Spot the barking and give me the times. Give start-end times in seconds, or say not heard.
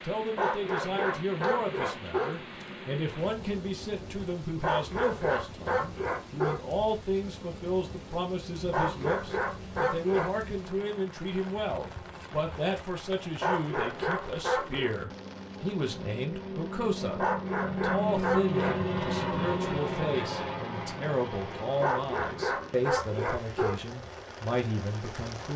0.3-2.3, 4.6-6.6, 8.7-10.3, 13.4-14.9, 17.1-18.8, 21.8-23.8.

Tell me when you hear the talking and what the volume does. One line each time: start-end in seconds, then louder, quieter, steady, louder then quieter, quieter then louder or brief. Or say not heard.
0.0-25.5 steady.